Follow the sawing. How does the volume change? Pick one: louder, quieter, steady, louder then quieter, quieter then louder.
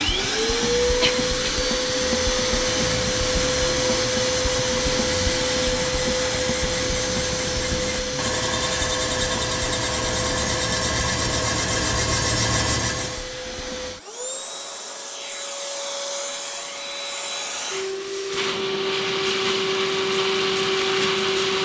louder.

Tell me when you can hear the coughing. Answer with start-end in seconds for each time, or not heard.
1.0-1.5.